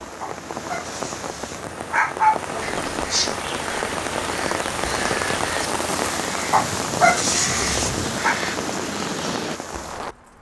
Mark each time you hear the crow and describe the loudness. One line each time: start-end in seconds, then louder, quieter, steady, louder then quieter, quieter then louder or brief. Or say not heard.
2.6-9.6 steady.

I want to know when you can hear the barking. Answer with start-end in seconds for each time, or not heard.
0.2-2.8, 6.5-8.3.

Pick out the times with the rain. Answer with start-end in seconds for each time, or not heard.
0.0-10.3.